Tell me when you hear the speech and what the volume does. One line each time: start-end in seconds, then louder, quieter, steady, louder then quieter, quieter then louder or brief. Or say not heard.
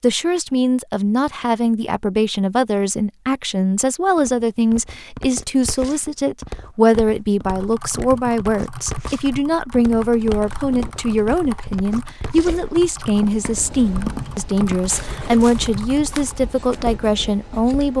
0.0-17.9 steady.